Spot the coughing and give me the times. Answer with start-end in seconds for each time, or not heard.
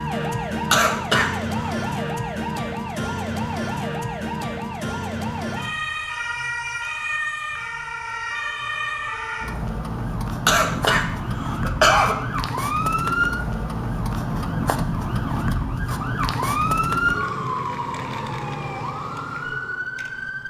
0.7-1.7, 10.4-12.2.